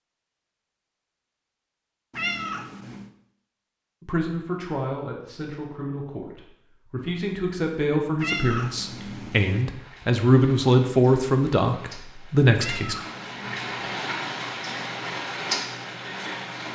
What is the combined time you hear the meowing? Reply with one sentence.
You can hear the meowing for 4 seconds altogether.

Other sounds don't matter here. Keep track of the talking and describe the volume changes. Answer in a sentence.
The volume of the talking goes up.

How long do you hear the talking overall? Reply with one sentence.
The talking can be heard for 9 seconds in total.